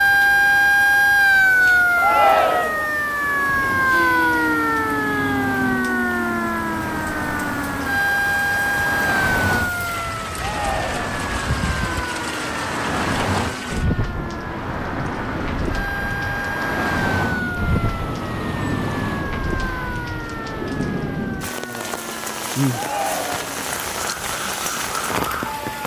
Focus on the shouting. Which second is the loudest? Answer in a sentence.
The volume of the shouting peaks at 2 seconds.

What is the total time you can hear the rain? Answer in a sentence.
The rain can be heard for 26 seconds in total.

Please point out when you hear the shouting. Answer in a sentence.
The shouting can be heard from 1.9 to 2.9 s, from 10.3 to 11.1 s and from 22.7 to 23.5 s.